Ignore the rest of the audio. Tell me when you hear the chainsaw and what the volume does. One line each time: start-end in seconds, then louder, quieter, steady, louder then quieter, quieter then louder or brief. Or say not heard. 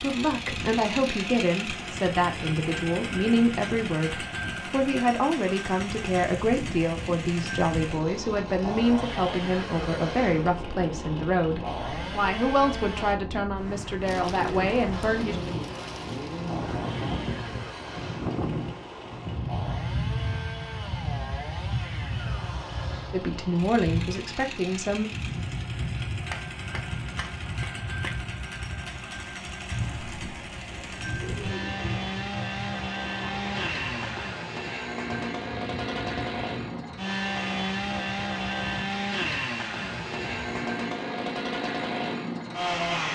0.0-13.2 steady
14.9-43.0 louder.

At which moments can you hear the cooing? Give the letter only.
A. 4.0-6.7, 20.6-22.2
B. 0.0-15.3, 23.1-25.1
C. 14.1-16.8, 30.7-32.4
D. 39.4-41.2
C.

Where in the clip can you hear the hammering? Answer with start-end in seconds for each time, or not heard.
26.3-28.1.